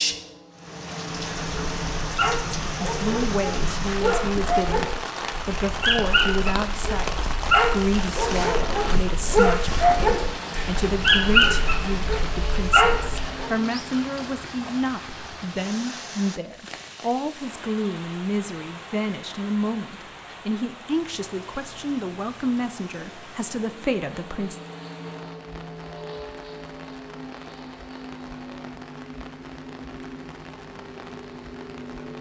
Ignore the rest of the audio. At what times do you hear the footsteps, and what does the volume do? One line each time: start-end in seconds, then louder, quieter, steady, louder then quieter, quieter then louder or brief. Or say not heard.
not heard.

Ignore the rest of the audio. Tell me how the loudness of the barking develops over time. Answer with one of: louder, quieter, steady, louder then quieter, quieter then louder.
louder.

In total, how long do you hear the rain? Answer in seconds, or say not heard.
32 s.